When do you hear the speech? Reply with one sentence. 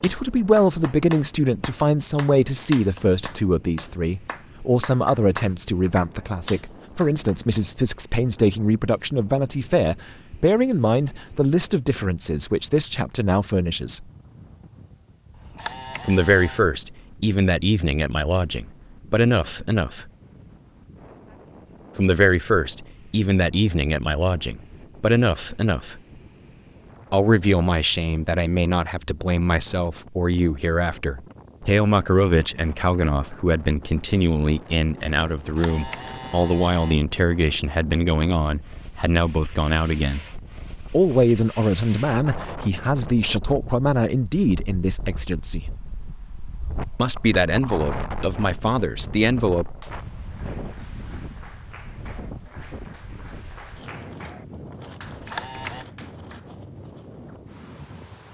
You can hear the speech from 0.0 to 14.1 s, from 16.1 to 20.1 s, from 21.9 to 26.0 s, from 27.1 to 40.2 s, from 40.9 to 45.7 s and from 47.0 to 49.7 s.